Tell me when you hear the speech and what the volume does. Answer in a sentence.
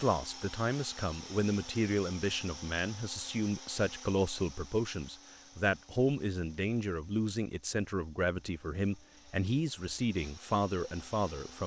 You can hear the speech from 0.0 to 11.6 s, at a steady volume.